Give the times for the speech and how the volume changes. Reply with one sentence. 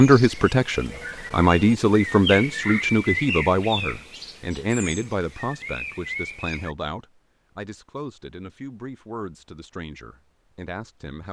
You can hear the speech from 0.0 to 11.2 s, getting quieter.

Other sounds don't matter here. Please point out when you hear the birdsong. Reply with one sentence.
The birdsong can be heard from 0.0 to 6.8 s.